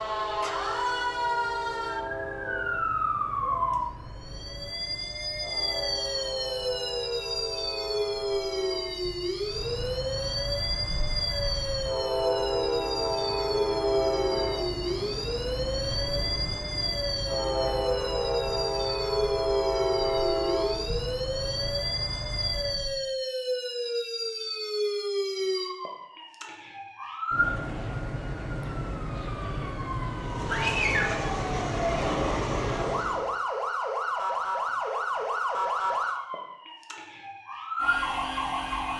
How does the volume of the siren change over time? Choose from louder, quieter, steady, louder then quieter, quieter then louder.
steady.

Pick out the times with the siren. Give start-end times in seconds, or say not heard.
0.0-38.9.